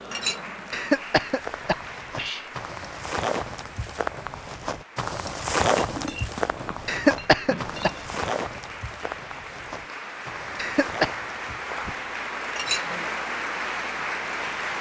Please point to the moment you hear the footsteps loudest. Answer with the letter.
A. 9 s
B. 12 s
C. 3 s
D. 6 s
D.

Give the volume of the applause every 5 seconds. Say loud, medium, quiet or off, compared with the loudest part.
medium, medium, loud.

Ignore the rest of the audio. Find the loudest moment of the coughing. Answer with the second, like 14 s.
7 s.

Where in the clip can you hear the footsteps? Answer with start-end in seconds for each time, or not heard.
1.4-12.2.